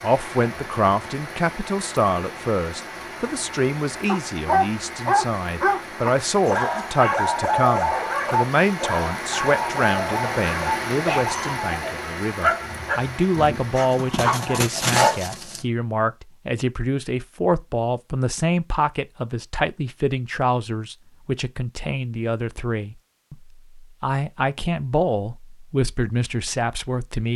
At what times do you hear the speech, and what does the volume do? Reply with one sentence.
The speech can be heard from 0.0 to 27.3 s, at a steady volume.